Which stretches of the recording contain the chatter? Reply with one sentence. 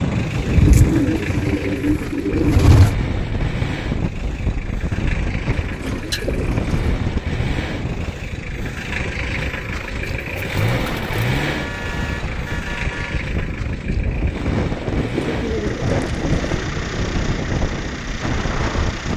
You can't hear the chatter here.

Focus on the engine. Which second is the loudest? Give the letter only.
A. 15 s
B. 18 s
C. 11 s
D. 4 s
C.